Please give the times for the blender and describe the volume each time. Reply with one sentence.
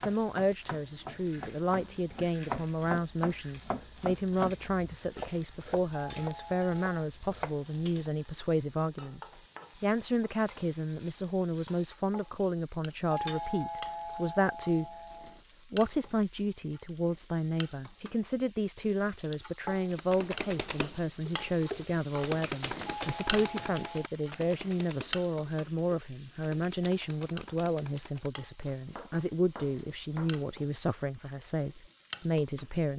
The blender can't be heard in this clip.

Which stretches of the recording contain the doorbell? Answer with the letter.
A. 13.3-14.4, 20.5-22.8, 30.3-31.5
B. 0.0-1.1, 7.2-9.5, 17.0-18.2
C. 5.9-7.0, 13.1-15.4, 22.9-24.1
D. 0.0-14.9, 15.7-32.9
C.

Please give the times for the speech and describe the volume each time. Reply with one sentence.
The speech can be heard from 0.0 to 14.9 s, at a steady volume; and from 15.7 to 32.9 s, at a steady volume.